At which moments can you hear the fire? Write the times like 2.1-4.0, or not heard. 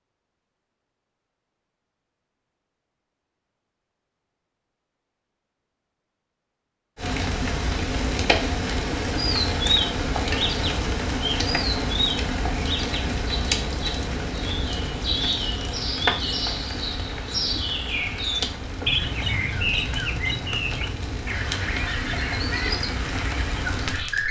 7.0-24.2.